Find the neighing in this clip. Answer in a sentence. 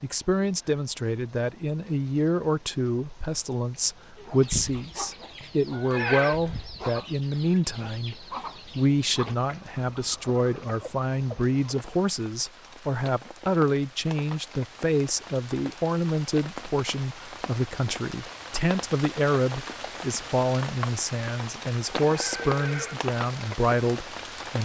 The neighing can be heard from 5.7 to 6.4 s and from 22.0 to 23.0 s.